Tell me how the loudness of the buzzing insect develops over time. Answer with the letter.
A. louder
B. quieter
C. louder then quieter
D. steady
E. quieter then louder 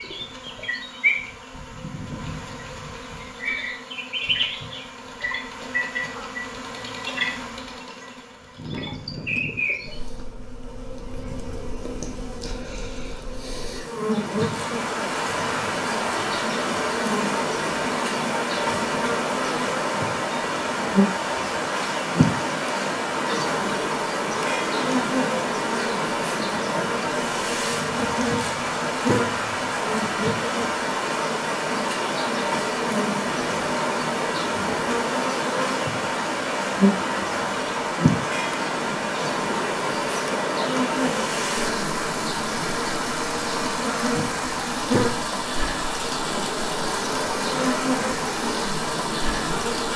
D.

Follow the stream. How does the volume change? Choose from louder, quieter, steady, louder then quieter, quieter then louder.
steady.